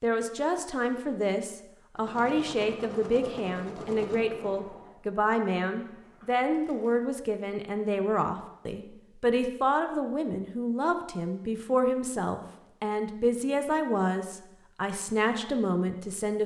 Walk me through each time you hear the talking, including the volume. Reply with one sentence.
The talking can be heard from 0.0 to 16.4 s, at a steady volume.